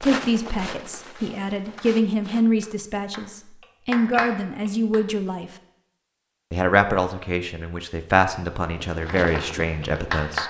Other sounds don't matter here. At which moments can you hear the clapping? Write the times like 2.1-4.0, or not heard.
2.6-5.0, 9.1-10.4.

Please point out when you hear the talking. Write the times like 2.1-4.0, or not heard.
0.0-5.5, 6.5-10.4.